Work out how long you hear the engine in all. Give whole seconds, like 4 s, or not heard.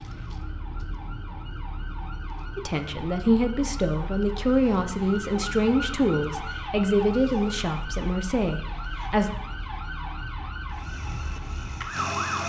2 s.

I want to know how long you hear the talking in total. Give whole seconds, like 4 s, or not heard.
7 s.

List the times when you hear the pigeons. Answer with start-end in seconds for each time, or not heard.
not heard.